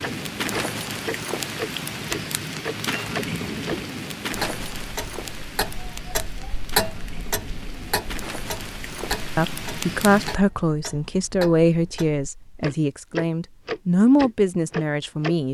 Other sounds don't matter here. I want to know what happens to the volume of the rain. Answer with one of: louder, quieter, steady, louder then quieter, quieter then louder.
quieter then louder.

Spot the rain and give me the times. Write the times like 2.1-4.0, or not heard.
0.0-10.4.